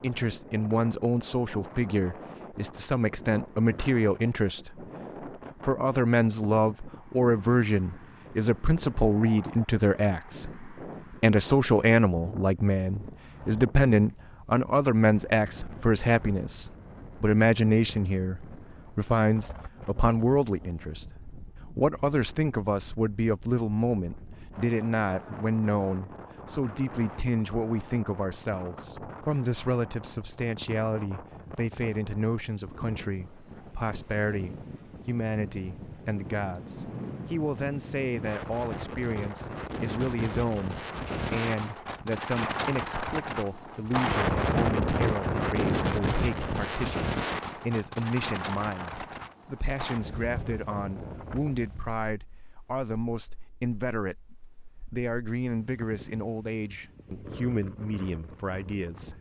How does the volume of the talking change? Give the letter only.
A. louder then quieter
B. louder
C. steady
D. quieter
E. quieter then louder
D.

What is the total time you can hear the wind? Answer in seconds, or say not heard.
59 s.